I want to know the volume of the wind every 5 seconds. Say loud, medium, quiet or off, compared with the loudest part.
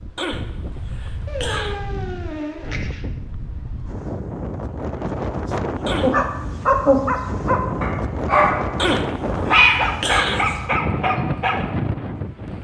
medium, loud, loud.